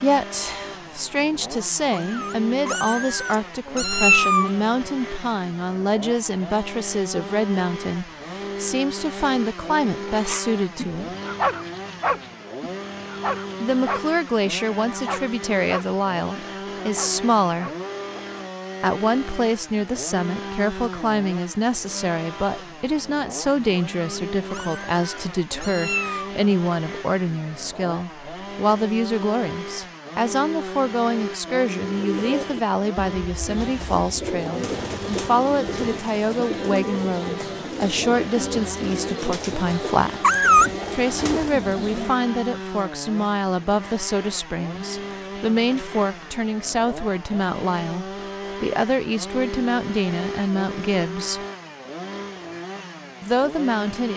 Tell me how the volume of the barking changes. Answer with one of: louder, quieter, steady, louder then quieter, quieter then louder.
quieter.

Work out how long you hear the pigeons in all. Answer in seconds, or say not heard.
10 s.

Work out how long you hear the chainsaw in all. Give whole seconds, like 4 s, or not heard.
54 s.